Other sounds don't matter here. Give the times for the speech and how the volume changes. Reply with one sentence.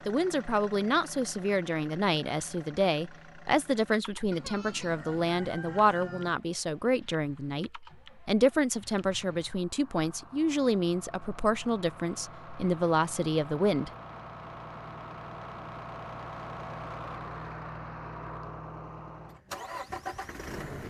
The speech can be heard from 0.1 to 13.9 s, at a steady volume.